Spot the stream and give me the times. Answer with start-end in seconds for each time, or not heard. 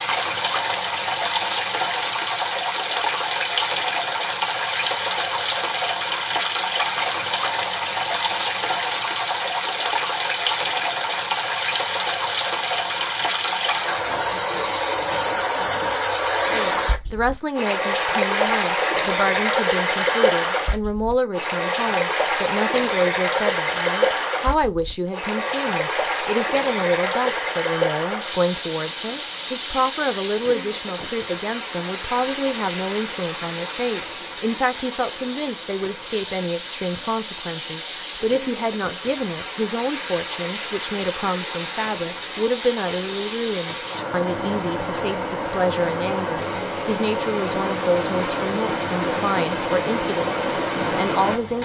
0.0-51.6.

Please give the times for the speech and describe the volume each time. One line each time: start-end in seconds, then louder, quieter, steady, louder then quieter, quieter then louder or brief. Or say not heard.
16.5-51.6 steady.